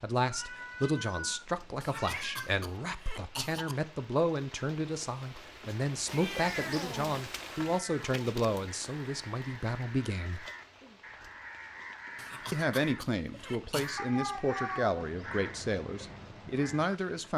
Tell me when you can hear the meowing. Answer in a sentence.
You can hear the meowing from 0.2 to 2.5 s, from 6.0 to 7.2 s and from 13.9 to 14.9 s.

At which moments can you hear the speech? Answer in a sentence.
The speech can be heard from 0.0 to 10.4 s and from 12.5 to 17.3 s.